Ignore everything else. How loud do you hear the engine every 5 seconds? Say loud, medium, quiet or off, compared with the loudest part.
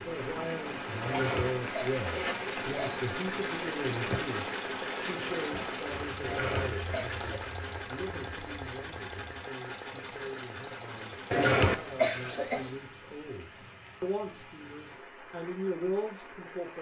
loud, loud, medium, off.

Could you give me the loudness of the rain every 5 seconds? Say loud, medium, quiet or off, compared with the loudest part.
loud, medium, quiet, medium.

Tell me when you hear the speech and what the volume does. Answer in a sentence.
You can hear the speech from 0.1 to 16.7 s, getting quieter then louder.